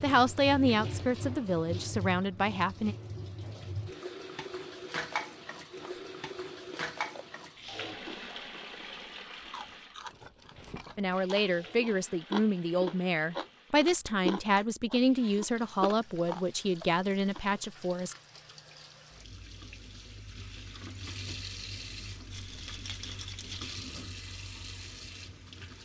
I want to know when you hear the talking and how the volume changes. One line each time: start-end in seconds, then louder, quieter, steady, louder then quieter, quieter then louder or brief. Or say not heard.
0.0-3.0 brief
10.9-18.1 steady.